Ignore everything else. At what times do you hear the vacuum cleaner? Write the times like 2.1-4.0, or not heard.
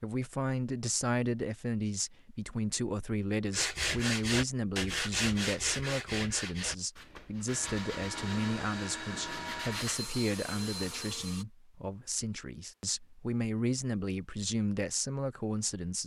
7.5-11.4.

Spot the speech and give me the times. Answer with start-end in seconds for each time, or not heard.
0.0-16.0.